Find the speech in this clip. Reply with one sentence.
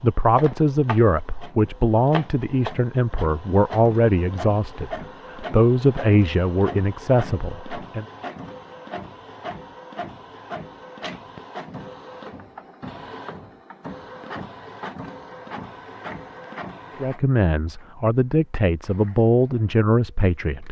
The speech can be heard from 0.0 to 8.1 s and from 17.0 to 20.6 s.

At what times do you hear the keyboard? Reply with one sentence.
The keyboard can't be heard in this clip.